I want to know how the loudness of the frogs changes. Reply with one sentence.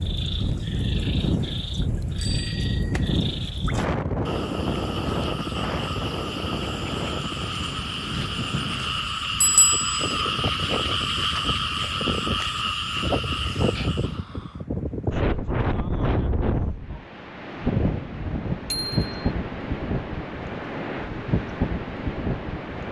The loudness of the frogs goes up.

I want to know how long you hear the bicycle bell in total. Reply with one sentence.
The bicycle bell can be heard for 2 seconds in total.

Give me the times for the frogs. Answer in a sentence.
The frogs can be heard from 0.0 to 14.2 s.